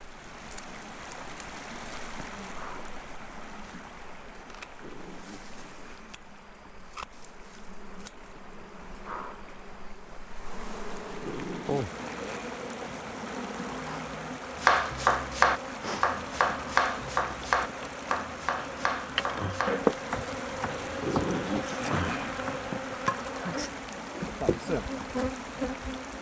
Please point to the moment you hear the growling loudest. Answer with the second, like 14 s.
21 s.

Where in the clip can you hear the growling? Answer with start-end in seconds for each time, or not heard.
4.6-6.2, 10.8-12.6, 20.8-22.4.